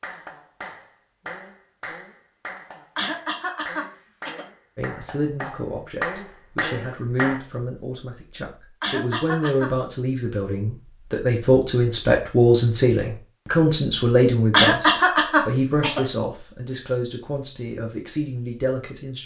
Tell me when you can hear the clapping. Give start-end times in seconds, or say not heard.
0.0-7.4.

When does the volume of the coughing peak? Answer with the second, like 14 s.
15 s.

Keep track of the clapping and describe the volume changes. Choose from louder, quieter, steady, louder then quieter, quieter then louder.
louder.